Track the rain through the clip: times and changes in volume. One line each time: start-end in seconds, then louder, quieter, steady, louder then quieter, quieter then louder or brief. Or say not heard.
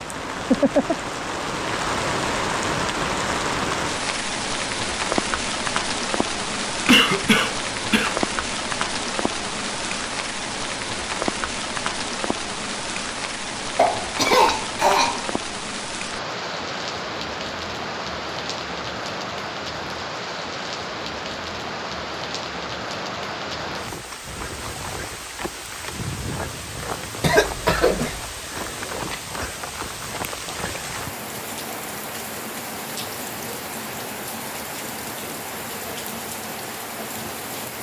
0.0-37.7 quieter.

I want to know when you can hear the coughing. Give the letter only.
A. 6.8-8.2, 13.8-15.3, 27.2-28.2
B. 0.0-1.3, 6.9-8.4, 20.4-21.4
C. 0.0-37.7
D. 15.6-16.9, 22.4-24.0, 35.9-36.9
A.